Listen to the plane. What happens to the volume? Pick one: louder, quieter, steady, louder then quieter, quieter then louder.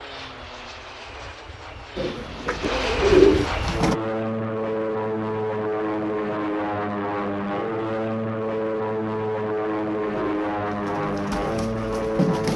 louder.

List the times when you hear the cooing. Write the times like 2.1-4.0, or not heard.
1.9-4.0, 10.0-12.5.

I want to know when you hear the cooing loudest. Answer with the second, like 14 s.
3 s.